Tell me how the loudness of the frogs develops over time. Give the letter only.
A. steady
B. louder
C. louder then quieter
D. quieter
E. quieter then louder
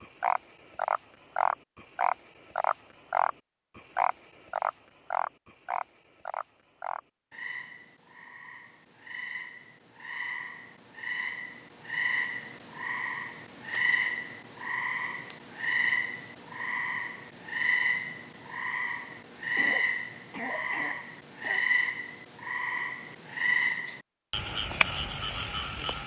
E.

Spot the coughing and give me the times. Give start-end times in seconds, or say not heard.
19.1-21.6.